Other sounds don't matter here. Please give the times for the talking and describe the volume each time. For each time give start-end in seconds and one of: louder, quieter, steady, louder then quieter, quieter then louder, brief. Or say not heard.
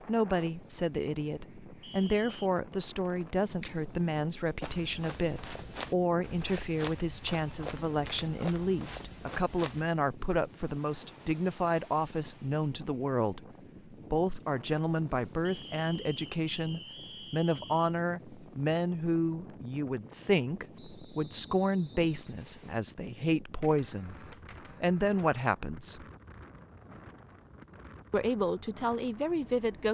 0.1-26.1 steady
28.1-29.8 brief.